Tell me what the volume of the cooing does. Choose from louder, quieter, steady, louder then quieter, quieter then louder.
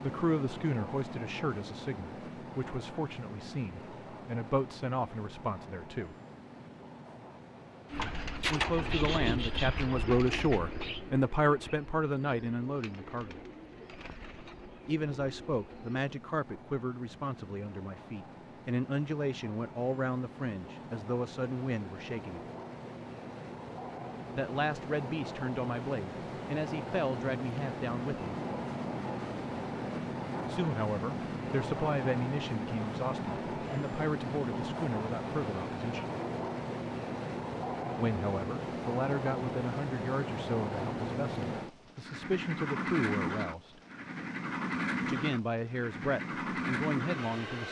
quieter.